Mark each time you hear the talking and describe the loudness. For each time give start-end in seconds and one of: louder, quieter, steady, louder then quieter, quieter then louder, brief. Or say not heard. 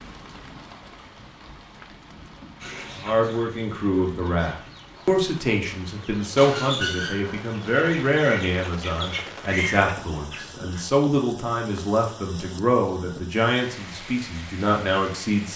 2.9-15.5 steady.